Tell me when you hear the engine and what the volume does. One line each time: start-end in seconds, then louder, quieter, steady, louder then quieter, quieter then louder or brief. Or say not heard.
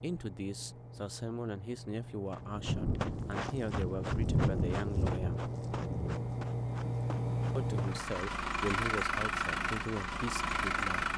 0.0-11.1 louder.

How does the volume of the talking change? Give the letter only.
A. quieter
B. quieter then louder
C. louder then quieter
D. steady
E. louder
D.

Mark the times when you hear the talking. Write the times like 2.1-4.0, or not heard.
0.0-5.5, 7.5-11.1.